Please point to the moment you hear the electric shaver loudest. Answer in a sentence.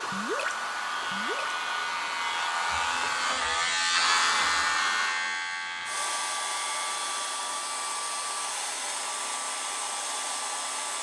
The volume of the electric shaver peaks at 4 seconds.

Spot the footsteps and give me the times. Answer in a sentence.
The footsteps can't be heard in this clip.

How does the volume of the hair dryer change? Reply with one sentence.
The loudness of the hair dryer stays about the same.